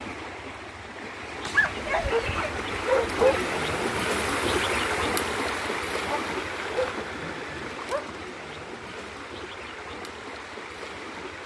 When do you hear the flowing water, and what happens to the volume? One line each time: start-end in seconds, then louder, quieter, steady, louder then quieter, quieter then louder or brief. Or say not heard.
0.0-11.4 louder then quieter.